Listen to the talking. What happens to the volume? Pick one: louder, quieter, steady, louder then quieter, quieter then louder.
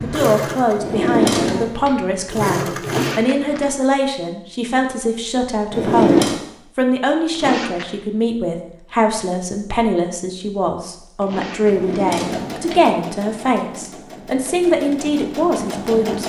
steady.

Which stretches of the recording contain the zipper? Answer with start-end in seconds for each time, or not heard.
2.8-3.8, 7.3-8.0, 11.2-11.9.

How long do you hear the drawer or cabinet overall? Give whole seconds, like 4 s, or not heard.
3 s.